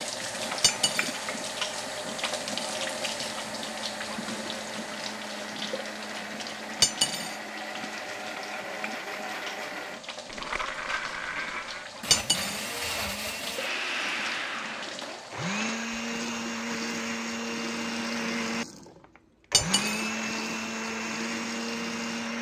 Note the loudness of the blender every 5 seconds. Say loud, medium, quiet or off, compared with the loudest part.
medium, medium, loud, loud, loud.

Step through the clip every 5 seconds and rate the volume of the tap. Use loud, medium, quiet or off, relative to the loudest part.
loud, medium, medium, medium, medium.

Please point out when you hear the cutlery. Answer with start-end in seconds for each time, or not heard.
0.6-1.2, 6.8-7.4, 12.1-12.7, 19.5-20.1.